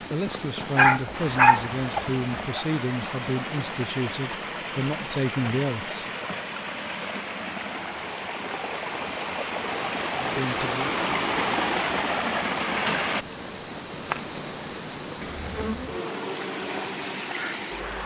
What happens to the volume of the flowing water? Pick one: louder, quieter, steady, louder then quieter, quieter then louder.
louder then quieter.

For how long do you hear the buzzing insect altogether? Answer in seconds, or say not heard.
3 s.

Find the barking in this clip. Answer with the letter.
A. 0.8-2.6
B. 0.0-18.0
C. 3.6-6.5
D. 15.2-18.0
A.